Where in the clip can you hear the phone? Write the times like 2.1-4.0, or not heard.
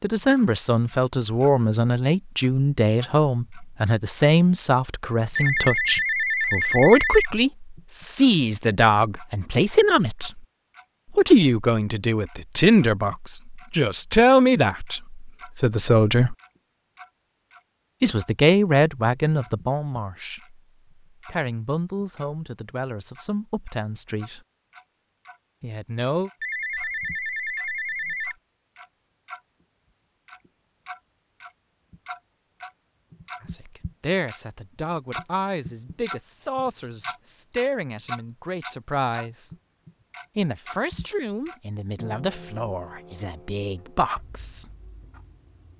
5.3-7.3, 26.4-28.4.